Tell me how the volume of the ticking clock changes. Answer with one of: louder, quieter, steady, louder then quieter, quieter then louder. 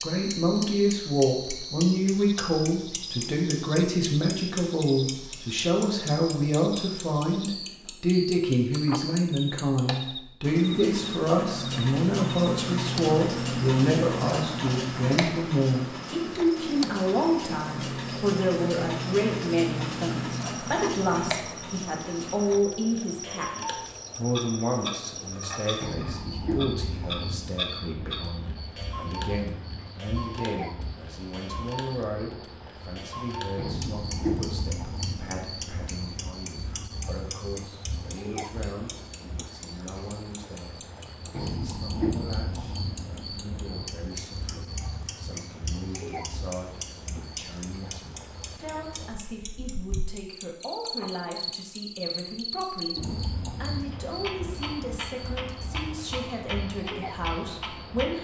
quieter.